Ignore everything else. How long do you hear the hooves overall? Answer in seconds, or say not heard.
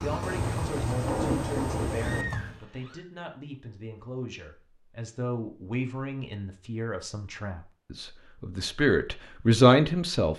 3 s.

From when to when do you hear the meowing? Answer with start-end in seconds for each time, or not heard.
2.0-3.0.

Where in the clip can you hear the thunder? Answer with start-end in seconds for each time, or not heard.
0.2-2.2.